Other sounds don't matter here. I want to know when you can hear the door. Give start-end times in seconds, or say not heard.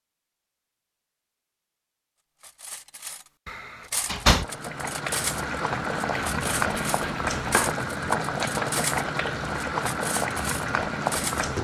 3.5-4.5.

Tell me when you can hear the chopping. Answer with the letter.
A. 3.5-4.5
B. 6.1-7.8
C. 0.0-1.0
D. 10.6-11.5
B.